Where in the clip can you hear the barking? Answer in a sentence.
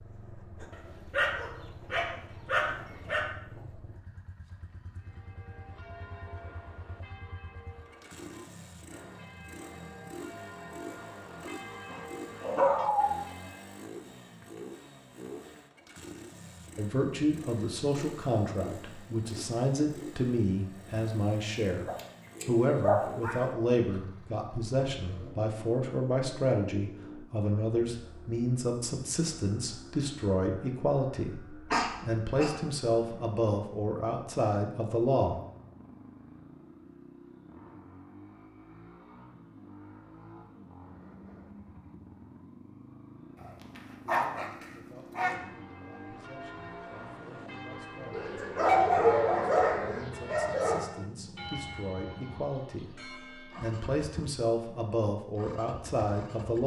The barking can be heard from 1.1 to 3.2 s, from 11.4 to 13.2 s, from 21.9 to 23.4 s, from 31.7 to 32.5 s, from 43.8 to 45.4 s and from 48.1 to 50.9 s.